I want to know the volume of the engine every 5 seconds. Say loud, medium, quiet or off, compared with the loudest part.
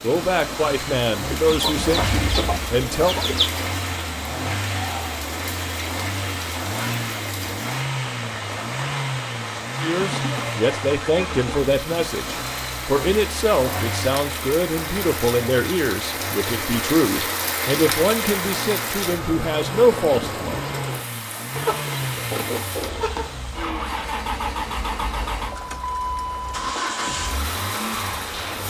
loud, loud, loud, medium, loud, loud.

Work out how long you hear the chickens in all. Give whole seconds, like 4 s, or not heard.
6 s.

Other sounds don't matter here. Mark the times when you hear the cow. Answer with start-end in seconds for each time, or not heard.
4.0-5.2.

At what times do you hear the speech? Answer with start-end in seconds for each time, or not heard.
0.0-3.1, 9.8-20.6.